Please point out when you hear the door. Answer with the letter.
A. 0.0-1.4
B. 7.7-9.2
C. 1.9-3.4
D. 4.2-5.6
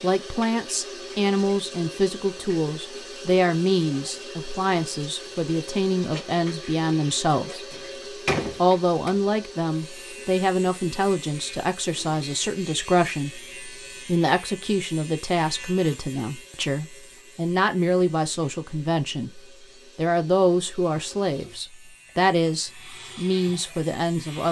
B.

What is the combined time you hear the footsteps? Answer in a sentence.
You can't hear the footsteps here.